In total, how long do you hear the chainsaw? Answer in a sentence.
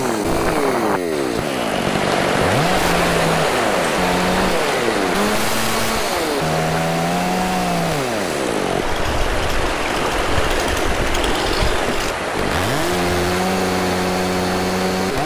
You can hear the chainsaw for 15 seconds altogether.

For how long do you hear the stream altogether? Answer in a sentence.
The stream can be heard for 15 seconds in total.